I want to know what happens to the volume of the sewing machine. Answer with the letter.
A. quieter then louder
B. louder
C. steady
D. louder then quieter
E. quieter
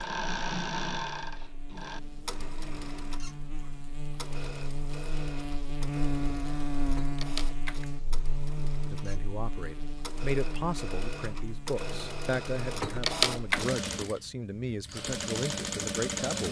A.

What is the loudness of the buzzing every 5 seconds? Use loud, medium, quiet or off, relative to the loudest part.
medium, loud, medium, off.